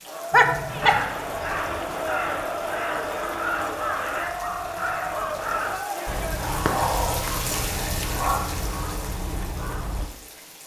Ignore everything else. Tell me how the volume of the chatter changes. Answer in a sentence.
The loudness of the chatter stays about the same.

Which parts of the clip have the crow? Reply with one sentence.
You can hear the crow from 0.8 to 10.1 s.